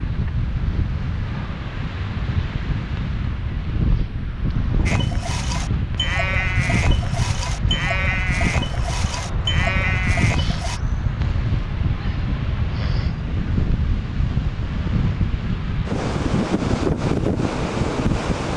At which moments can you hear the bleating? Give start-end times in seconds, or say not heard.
4.8-10.8.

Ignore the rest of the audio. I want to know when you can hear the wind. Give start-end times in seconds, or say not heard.
0.0-18.5.